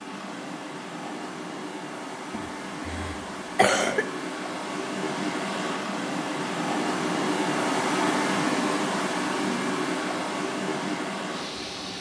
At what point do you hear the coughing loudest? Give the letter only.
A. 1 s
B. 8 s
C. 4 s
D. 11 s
C.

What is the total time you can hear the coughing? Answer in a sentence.
The coughing can be heard for 2 seconds in total.